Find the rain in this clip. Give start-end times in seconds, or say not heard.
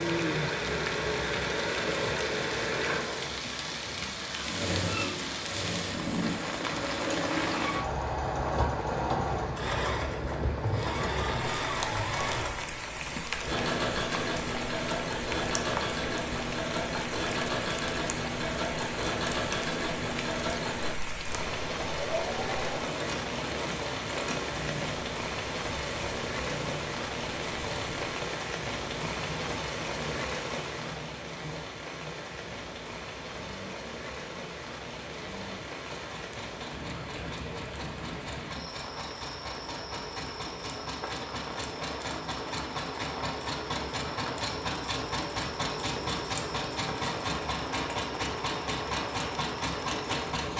0.0-50.5.